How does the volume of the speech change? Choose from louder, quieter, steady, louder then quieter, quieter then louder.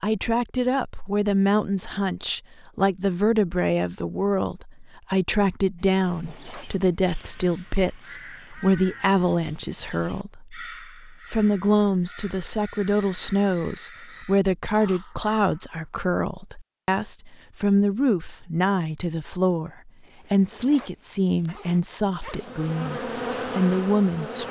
steady.